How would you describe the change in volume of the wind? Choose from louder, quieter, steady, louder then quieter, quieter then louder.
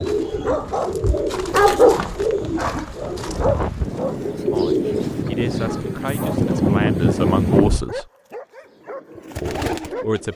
louder.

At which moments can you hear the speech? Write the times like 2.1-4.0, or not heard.
4.5-8.1, 9.4-10.3.